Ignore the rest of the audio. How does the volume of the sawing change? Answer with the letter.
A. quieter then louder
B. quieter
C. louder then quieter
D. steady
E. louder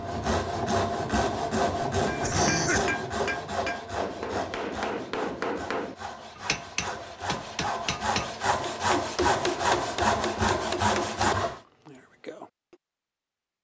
A.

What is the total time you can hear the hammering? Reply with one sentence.
The hammering can be heard for 11 seconds in total.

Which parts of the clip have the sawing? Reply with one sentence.
You can hear the sawing from 0.0 to 11.6 s.